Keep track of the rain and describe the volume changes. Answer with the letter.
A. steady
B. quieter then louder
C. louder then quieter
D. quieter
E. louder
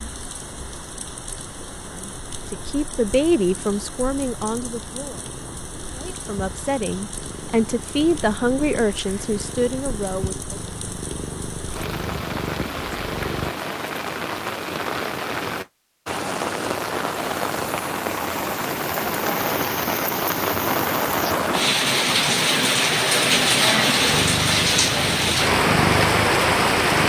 E.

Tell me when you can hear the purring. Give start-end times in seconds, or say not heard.
0.0-13.5, 23.9-27.0.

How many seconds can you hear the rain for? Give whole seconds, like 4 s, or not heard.
27 s.